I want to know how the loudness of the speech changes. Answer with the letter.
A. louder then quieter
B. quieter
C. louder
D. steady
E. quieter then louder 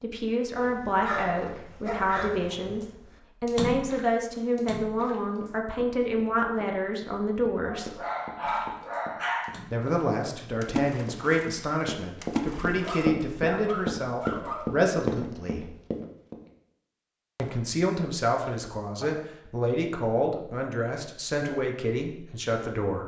D.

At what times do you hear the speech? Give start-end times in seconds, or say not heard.
0.0-8.0, 9.7-15.7, 17.4-23.0.